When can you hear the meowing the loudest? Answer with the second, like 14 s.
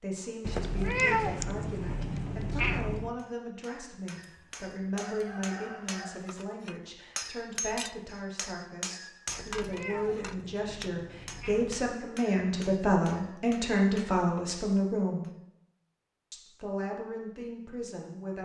1 s.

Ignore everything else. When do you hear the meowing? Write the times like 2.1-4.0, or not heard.
0.4-3.1, 9.2-11.9.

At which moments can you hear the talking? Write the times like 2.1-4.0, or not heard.
0.0-15.3, 16.3-18.3.